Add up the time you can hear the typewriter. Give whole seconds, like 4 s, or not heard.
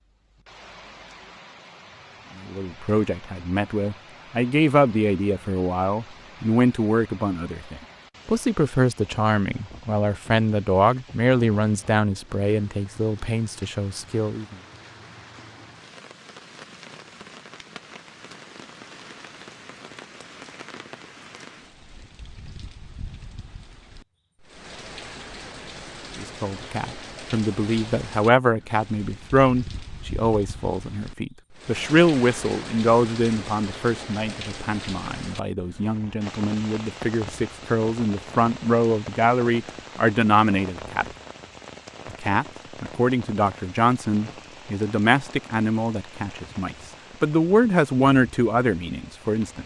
not heard.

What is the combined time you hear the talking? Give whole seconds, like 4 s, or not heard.
35 s.